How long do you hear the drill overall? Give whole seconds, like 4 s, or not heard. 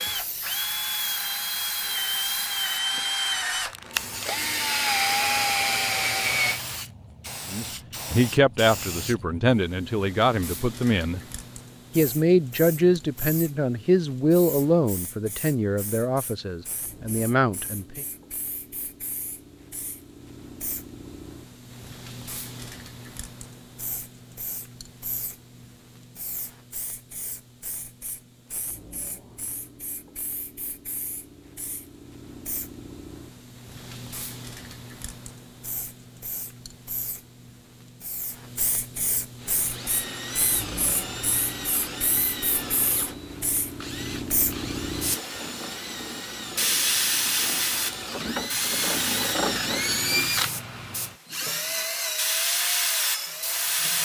21 s.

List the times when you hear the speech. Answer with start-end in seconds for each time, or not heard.
7.5-11.2, 11.9-18.1.